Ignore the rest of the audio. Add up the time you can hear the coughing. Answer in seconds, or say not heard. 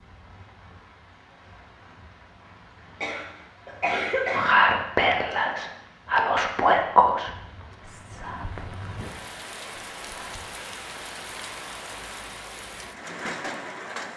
2 s.